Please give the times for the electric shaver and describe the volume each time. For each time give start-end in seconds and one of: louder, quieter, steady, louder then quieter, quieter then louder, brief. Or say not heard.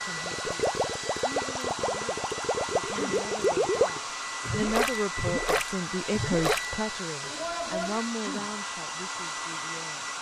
not heard.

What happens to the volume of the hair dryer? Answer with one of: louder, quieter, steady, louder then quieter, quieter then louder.
steady.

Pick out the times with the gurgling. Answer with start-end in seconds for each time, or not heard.
0.1-6.7.